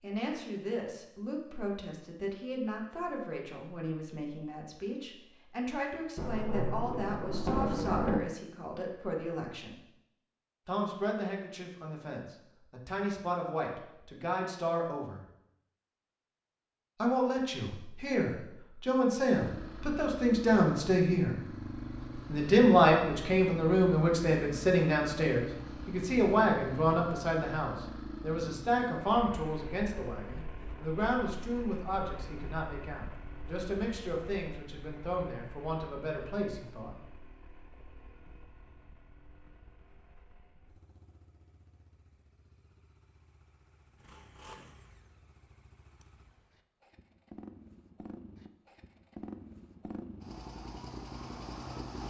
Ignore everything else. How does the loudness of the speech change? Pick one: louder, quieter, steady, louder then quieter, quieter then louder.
louder then quieter.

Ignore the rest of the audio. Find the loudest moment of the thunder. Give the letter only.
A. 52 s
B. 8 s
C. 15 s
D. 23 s
B.